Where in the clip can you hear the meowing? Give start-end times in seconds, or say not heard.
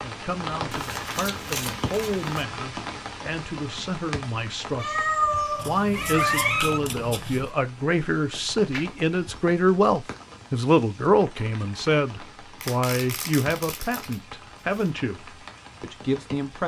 4.8-6.8, 8.7-9.4.